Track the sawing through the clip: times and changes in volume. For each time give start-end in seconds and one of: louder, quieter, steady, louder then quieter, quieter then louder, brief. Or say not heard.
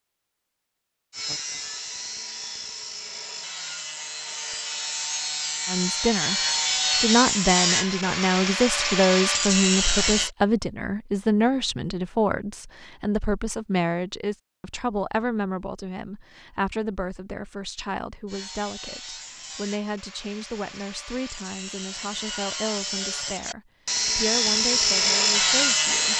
1.1-10.3 louder
18.2-26.1 louder.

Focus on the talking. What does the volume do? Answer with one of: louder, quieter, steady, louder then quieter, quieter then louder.
quieter.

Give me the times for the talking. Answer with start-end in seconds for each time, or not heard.
5.7-26.1.